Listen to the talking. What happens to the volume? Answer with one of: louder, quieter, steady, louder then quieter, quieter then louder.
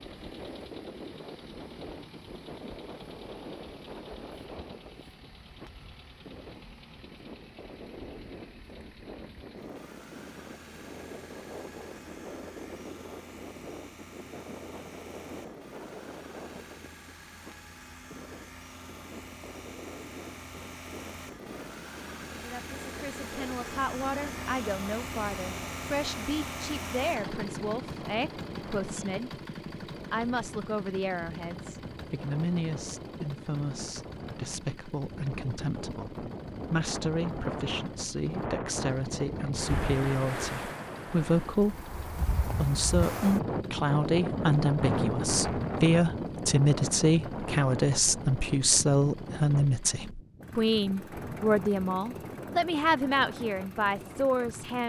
louder.